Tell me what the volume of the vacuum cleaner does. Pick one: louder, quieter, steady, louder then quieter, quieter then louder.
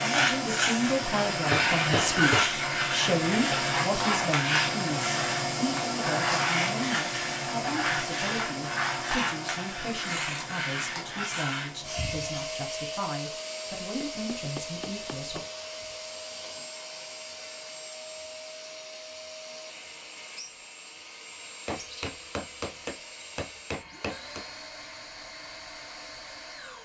quieter.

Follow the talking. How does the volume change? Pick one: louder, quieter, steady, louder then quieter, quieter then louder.
quieter.